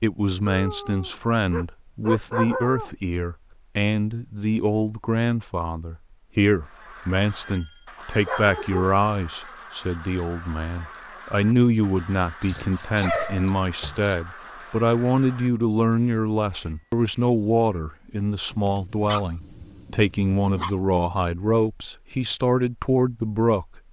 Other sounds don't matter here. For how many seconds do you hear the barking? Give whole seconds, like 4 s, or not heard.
7 s.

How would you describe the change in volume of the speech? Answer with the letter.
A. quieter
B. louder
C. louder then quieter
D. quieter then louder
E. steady
E.